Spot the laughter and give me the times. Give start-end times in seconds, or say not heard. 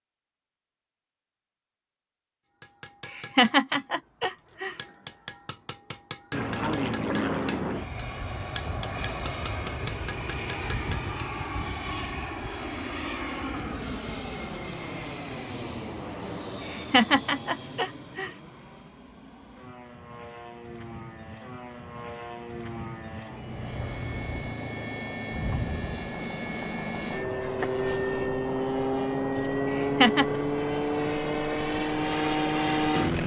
3.0-4.8, 16.6-18.3, 29.7-30.2.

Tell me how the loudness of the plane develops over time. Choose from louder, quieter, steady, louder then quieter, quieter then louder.
quieter then louder.